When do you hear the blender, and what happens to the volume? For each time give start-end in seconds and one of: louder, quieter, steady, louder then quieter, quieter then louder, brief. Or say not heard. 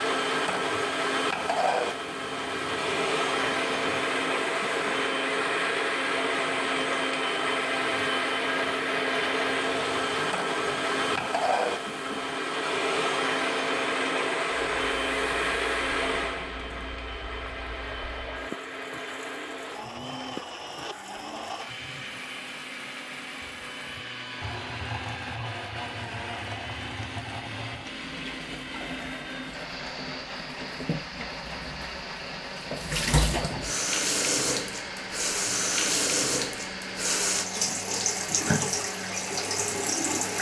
0.0-40.3 quieter.